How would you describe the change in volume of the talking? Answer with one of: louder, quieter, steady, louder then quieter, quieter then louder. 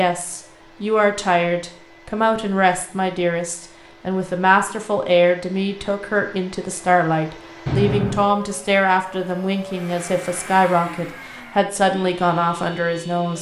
steady.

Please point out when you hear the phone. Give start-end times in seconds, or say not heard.
7.7-8.3.